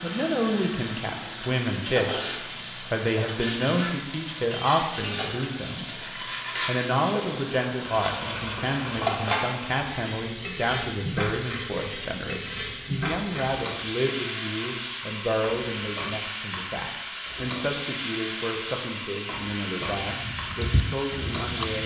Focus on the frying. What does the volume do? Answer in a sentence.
The volume of the frying stays about the same.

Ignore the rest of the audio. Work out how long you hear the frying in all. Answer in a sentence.
The frying can be heard for 22 seconds in total.